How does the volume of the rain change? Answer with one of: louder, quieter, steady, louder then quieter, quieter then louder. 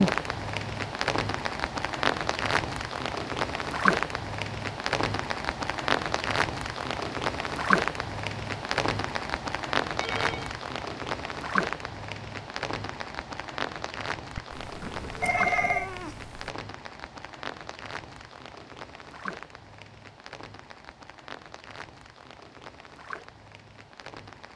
quieter.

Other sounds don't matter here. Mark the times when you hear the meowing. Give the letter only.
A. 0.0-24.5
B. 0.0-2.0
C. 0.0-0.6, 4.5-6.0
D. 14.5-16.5
D.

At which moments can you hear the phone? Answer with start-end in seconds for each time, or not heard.
9.9-10.5, 14.3-15.9.